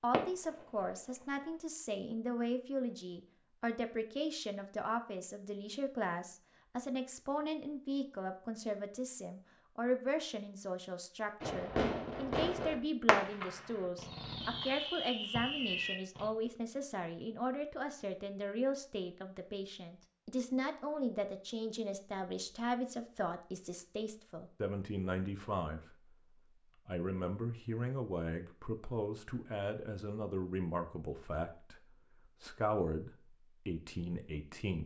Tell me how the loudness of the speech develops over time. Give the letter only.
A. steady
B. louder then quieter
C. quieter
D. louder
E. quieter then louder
A.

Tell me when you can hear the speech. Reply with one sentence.
You can hear the speech from 0.0 to 26.1 s and from 26.9 to 34.8 s.